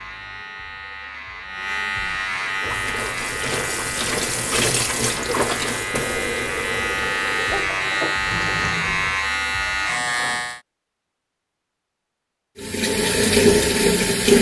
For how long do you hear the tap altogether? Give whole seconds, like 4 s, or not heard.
9 s.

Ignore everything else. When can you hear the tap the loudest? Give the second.
14 s.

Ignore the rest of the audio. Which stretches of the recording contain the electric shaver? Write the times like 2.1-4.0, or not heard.
0.0-10.6.